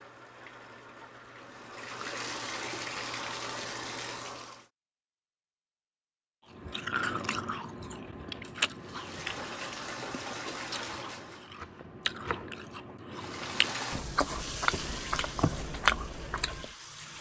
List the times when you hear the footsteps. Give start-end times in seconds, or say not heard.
not heard.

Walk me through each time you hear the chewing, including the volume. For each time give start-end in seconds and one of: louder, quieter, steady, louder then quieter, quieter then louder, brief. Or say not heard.
6.7-16.6 quieter then louder.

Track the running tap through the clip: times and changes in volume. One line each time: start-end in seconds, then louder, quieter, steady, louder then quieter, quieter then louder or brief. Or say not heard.
0.0-4.7 louder
8.8-11.6 brief
13.1-17.1 quieter.